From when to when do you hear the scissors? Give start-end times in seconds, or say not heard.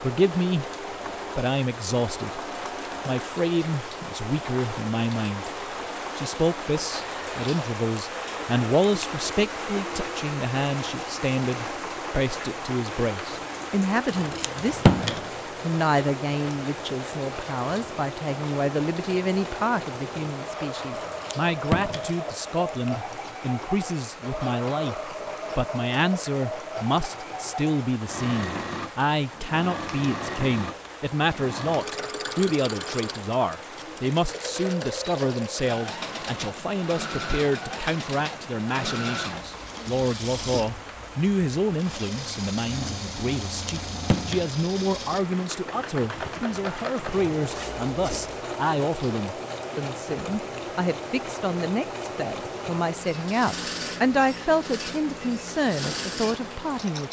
14.1-15.2, 20.9-22.1, 43.5-44.5.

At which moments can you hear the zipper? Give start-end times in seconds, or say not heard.
47.5-48.4.